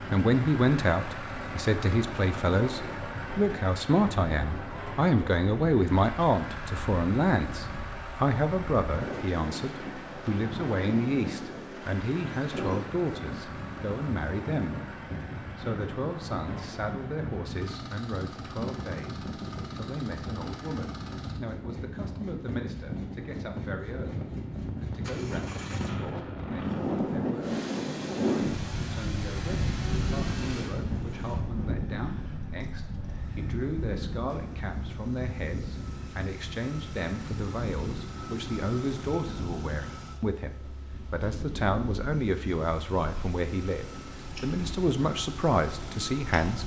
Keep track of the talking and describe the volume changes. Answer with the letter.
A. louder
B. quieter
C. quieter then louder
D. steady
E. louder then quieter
C.